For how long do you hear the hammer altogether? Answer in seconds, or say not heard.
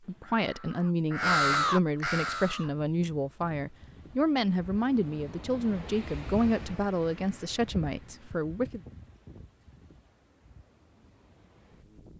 not heard.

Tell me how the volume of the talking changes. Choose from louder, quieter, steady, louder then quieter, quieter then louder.
steady.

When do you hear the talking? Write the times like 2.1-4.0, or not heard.
0.1-8.8.